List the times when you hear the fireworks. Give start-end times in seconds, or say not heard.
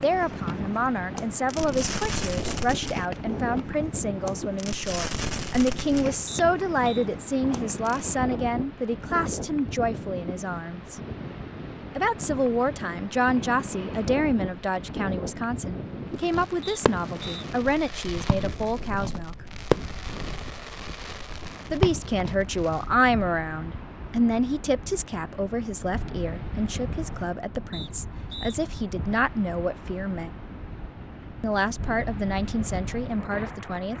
0.0-8.1, 16.1-22.9.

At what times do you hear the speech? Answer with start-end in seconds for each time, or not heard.
0.0-10.9, 11.9-19.4, 21.7-30.3, 31.4-33.9.